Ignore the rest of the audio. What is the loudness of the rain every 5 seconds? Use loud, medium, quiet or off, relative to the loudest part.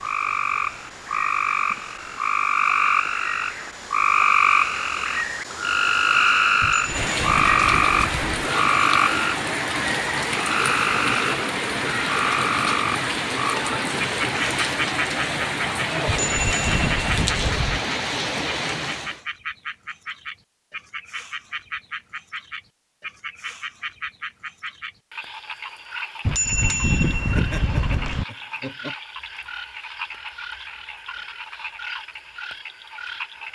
quiet, loud, loud, loud, off, off, off.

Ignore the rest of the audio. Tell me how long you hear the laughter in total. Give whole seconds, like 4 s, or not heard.
2 s.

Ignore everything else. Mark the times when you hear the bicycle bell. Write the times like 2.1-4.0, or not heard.
6.6-8.4, 16.1-17.8, 26.2-28.2.